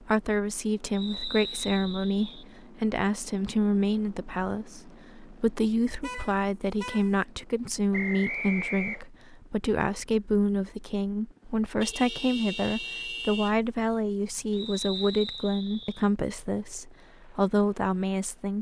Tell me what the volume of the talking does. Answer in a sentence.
The volume of the talking stays about the same.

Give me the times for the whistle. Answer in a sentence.
The whistle can be heard from 0.9 to 2.5 s, from 7.9 to 9.1 s and from 14.5 to 16.1 s.